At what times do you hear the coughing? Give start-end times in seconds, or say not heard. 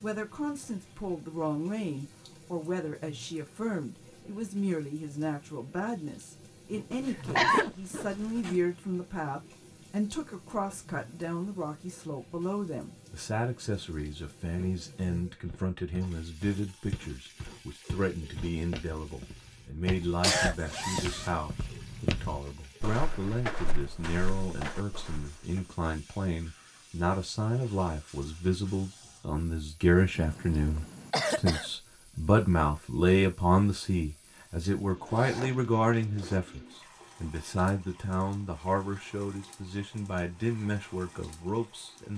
7.1-7.7, 19.9-20.6, 30.1-31.7.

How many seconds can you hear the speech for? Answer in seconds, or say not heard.
42 s.